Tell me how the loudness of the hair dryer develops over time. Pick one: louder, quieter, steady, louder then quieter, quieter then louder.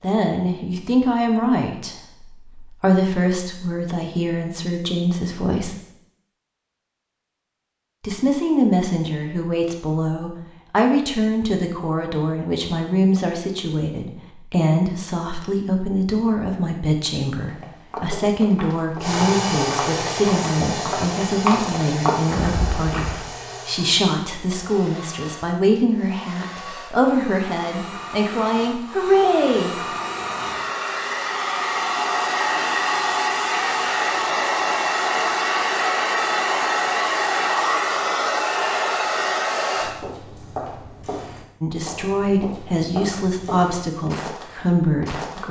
quieter then louder.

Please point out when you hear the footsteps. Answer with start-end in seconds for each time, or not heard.
17.4-23.1, 39.8-45.4.